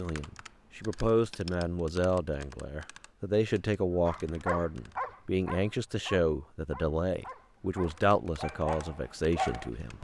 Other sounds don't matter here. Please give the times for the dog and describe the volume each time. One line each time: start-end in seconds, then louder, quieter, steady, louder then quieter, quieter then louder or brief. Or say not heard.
4.0-9.9 quieter then louder.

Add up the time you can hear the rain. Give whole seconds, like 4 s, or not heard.
not heard.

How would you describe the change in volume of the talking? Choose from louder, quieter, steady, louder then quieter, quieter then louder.
steady.